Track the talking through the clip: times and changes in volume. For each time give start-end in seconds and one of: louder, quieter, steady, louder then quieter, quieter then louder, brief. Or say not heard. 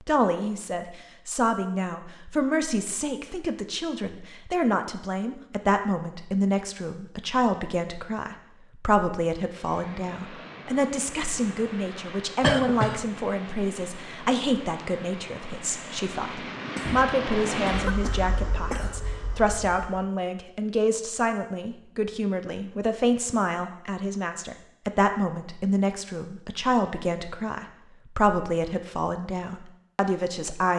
0.0-30.7 steady.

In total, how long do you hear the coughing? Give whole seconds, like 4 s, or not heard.
3 s.